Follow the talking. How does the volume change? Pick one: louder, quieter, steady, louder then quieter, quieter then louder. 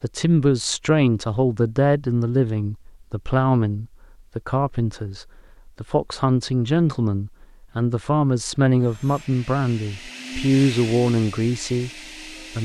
steady.